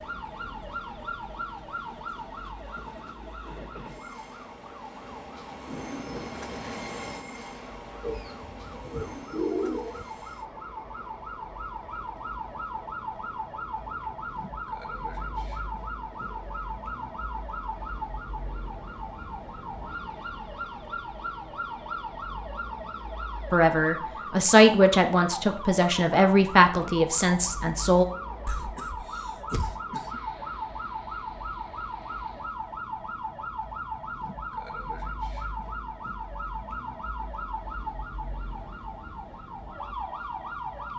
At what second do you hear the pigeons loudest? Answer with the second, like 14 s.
10 s.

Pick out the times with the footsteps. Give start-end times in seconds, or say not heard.
not heard.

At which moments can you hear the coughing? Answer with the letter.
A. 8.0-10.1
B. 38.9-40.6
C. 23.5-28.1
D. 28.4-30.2
D.